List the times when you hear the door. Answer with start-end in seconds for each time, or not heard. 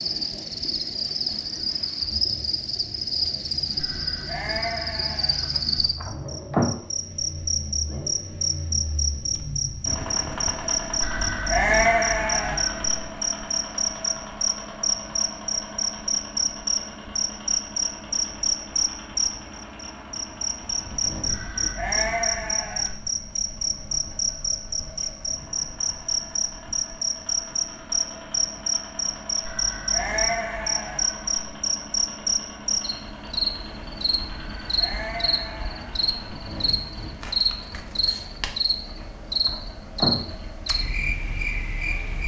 5.4-6.8, 38.9-40.4.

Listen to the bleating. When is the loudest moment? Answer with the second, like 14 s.
12 s.